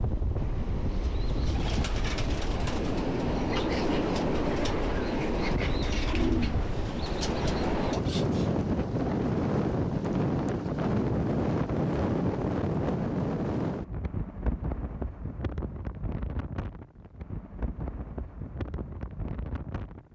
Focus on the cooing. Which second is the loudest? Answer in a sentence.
The volume of the cooing peaks at 6 seconds.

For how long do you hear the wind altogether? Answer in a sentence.
The wind can be heard for 20 seconds in total.